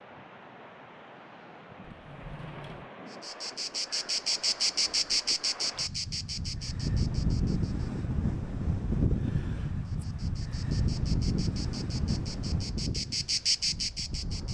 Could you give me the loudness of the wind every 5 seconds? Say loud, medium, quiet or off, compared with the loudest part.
quiet, loud, loud.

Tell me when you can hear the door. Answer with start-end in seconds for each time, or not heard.
1.8-2.9.